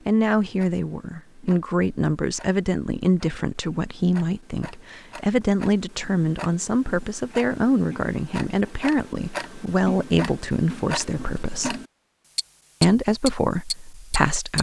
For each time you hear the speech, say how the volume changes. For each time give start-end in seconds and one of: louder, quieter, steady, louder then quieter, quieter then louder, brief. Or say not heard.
0.1-11.8 steady
12.8-14.5 brief.